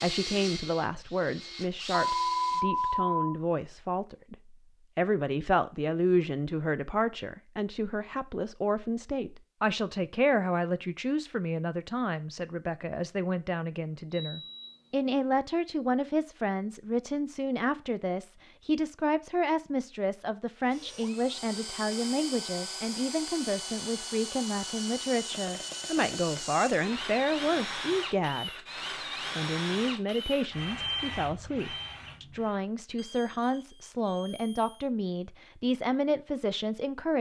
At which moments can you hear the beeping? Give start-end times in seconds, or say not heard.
2.1-3.4, 14.1-14.9, 33.0-34.9.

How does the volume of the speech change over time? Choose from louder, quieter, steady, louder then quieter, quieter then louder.
steady.